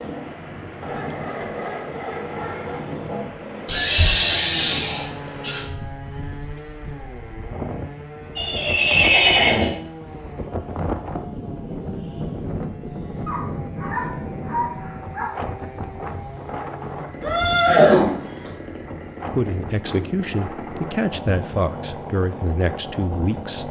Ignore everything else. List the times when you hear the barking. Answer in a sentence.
You can hear the barking from 0.8 to 2.8 s and from 13.2 to 15.3 s.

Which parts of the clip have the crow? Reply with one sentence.
You can't hear the crow here.